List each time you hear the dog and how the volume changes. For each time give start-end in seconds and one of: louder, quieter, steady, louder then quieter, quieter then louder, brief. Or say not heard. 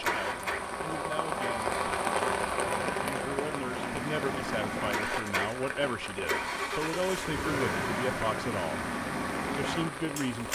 not heard.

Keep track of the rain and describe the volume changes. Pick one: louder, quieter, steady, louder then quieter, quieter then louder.
quieter.